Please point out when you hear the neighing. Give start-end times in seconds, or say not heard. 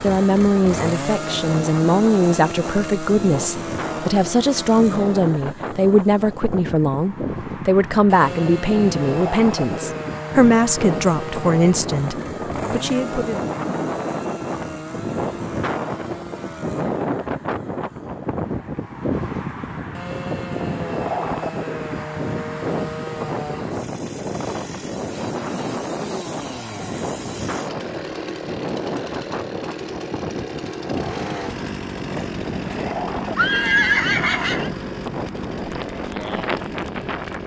32.1-34.7.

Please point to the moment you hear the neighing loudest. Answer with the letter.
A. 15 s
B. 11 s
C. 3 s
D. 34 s
D.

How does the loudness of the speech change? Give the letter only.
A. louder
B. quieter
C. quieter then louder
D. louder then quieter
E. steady
E.